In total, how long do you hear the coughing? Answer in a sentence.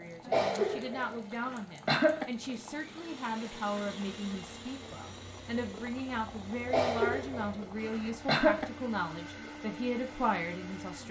The coughing can be heard for 4 seconds in total.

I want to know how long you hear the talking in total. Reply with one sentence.
The talking can be heard for 11 seconds in total.